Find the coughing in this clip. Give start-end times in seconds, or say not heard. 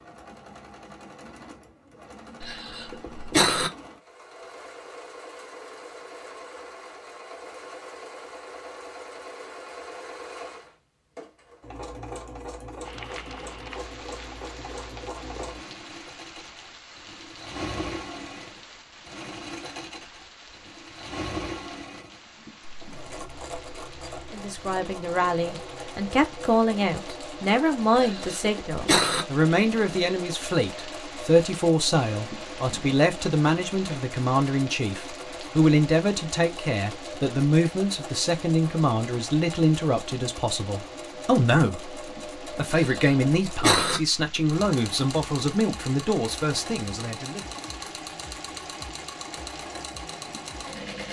2.4-3.7, 27.9-29.2, 42.7-44.0.